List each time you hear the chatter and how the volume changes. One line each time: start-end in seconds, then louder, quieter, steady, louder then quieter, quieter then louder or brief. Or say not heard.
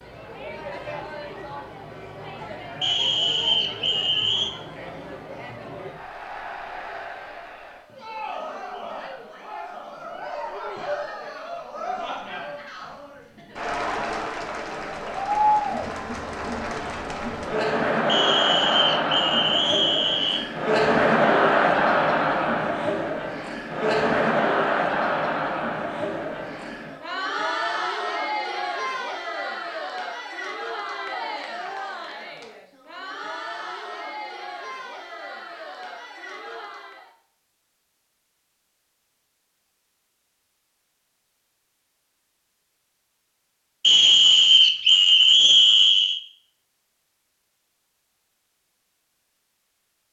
0.0-37.1 louder then quieter.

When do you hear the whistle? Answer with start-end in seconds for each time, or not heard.
2.8-4.5, 18.1-20.4, 43.8-46.2.